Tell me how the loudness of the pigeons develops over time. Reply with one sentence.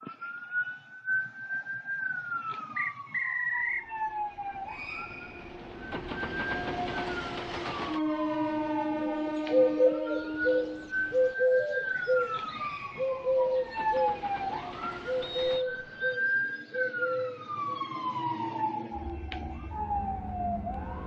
The loudness of the pigeons goes down.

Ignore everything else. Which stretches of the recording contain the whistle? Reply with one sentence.
The whistle can be heard from 2.8 to 3.9 s and from 15.2 to 16.1 s.